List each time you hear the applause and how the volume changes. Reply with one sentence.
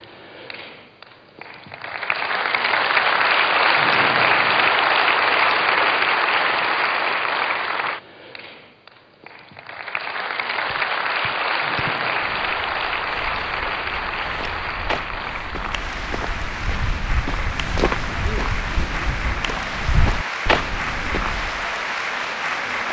The applause can be heard from 0.0 to 22.8 s, getting quieter.